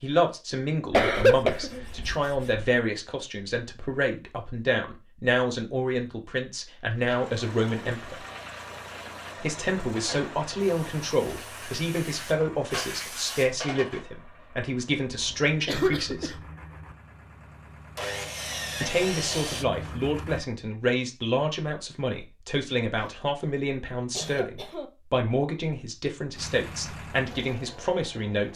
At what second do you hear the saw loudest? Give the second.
19 s.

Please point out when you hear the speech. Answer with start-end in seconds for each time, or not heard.
0.0-8.2, 9.4-16.4, 18.8-28.5.